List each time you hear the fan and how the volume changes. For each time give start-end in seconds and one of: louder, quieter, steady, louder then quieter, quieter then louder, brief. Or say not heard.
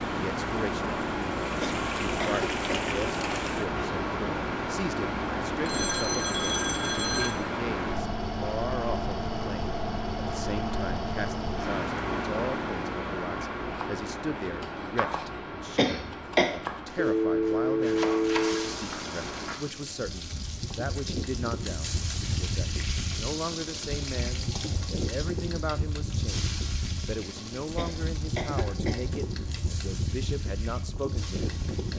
0.0-31.9 quieter.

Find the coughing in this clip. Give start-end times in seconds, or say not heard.
1.6-2.8, 15.8-16.5, 27.8-29.0.